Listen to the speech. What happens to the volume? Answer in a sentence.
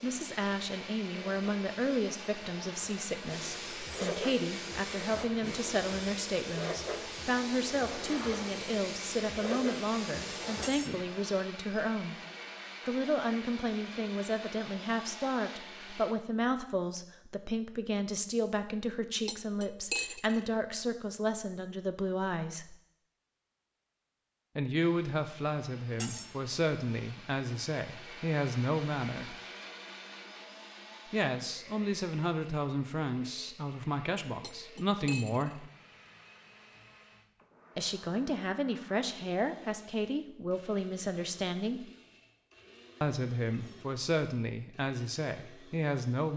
The volume of the speech stays about the same.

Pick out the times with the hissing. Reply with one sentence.
The hissing can be heard from 0.0 to 11.0 s.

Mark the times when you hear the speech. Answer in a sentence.
You can hear the speech from 0.0 to 12.2 s, from 12.8 to 22.8 s, from 24.6 to 29.4 s, from 31.1 to 35.7 s, from 37.8 to 41.9 s and from 43.0 to 46.3 s.